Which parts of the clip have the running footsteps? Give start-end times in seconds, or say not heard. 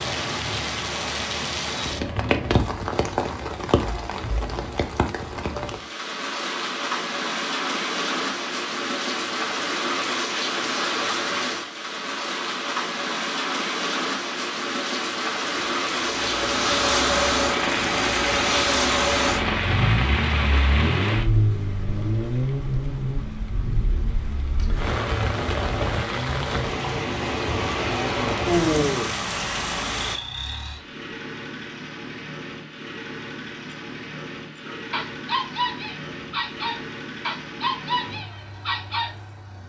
not heard.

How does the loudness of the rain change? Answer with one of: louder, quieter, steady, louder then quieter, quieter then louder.
steady.